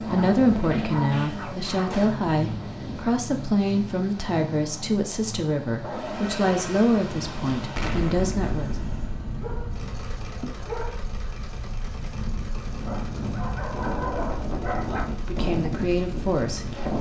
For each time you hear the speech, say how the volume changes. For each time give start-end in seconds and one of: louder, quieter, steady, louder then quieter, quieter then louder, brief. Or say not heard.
0.0-8.8 steady
15.2-16.6 brief.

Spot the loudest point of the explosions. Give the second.
8 s.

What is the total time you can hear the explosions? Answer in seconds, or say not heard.
3 s.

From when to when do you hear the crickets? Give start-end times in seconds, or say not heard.
not heard.